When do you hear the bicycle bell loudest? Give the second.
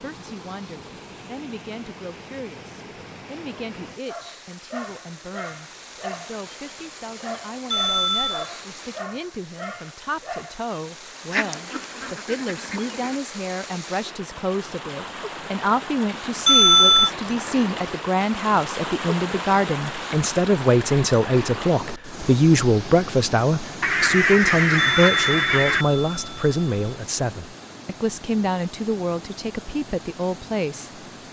17 s.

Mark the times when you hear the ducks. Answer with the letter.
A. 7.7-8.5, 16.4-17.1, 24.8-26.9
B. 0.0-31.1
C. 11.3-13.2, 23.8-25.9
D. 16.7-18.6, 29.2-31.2
C.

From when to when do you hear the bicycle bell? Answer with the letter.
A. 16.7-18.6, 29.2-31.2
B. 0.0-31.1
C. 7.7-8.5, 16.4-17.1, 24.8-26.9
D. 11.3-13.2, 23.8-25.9
C.